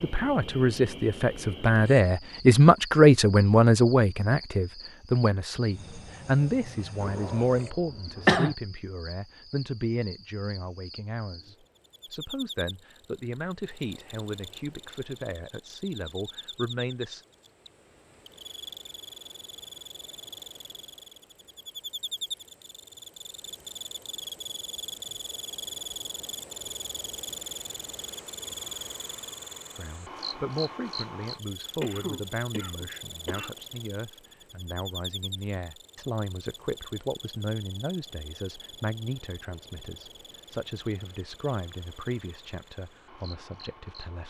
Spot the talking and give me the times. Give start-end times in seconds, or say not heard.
0.0-17.2, 29.8-44.2.